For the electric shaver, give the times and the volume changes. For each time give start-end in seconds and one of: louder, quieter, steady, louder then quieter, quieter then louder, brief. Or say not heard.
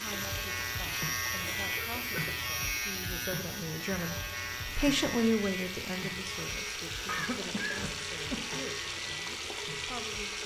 0.0-10.4 quieter.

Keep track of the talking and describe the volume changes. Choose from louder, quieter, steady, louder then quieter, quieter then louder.
louder then quieter.